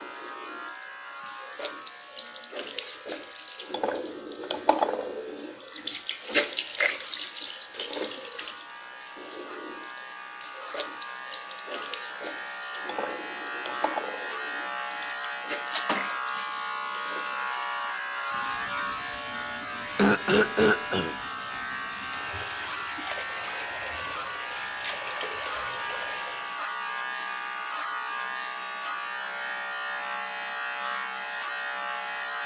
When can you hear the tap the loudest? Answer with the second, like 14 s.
7 s.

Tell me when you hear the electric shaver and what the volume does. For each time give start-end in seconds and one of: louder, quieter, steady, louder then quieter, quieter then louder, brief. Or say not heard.
0.0-32.4 louder.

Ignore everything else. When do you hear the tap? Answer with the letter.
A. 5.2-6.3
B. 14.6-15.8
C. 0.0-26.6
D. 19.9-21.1
C.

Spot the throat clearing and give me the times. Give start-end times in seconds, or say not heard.
19.9-21.1.